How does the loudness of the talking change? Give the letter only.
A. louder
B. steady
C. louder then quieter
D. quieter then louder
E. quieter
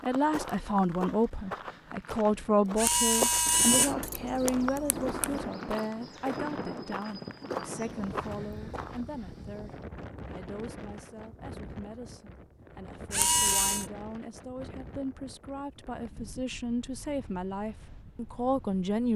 D.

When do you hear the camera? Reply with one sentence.
The camera can be heard from 2.8 to 5.5 s and from 13.1 to 13.8 s.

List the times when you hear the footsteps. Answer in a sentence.
The footsteps can be heard from 0.0 to 9.1 s.